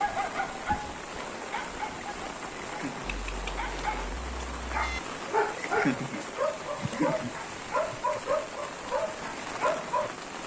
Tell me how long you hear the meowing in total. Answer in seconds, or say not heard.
2 s.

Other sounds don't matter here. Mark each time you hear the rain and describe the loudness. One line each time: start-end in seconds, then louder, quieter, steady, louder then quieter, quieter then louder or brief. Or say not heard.
0.0-10.4 steady.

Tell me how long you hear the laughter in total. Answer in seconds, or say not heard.
3 s.